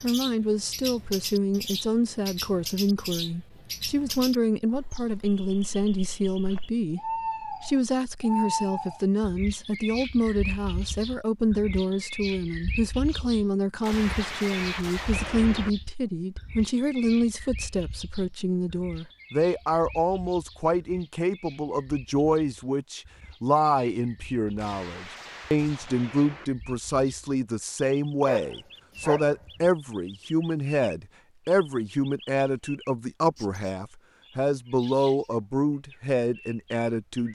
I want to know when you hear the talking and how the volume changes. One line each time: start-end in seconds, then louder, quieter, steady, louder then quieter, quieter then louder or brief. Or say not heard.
0.0-37.3 steady.